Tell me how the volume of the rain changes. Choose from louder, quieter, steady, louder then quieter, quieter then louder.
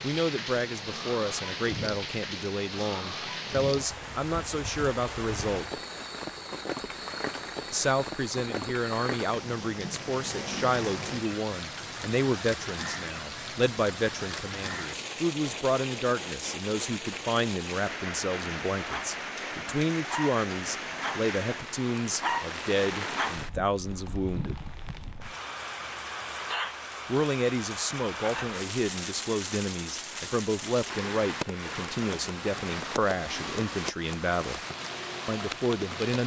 steady.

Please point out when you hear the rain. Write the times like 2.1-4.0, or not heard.
0.0-36.2.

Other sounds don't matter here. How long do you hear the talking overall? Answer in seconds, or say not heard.
31 s.